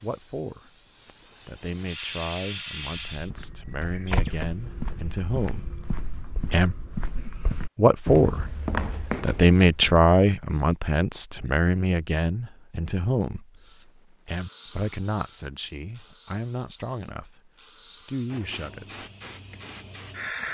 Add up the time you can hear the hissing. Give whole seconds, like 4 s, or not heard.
10 s.